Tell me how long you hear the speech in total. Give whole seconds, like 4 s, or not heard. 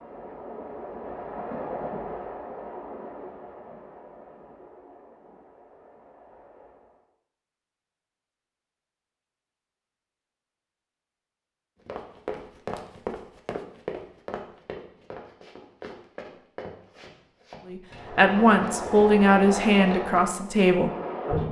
3 s.